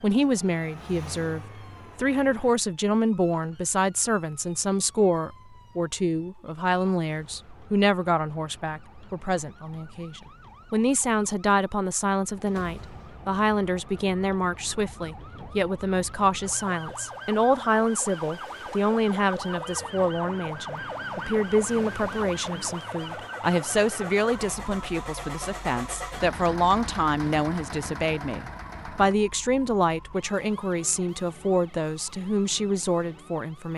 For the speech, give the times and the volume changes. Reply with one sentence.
The speech can be heard from 0.0 to 33.7 s, at a steady volume.